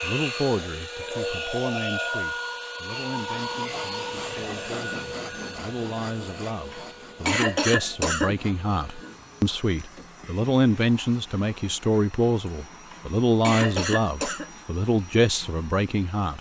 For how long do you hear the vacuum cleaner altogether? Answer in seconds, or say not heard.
16 s.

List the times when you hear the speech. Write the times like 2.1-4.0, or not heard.
0.0-16.3.